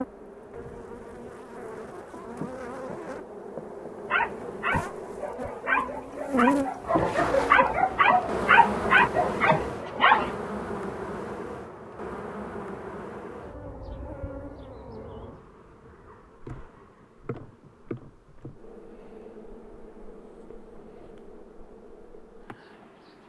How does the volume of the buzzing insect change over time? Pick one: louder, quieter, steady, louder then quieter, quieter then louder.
louder then quieter.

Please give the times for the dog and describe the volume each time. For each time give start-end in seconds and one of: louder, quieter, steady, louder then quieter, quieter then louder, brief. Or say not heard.
4.0-10.3 louder.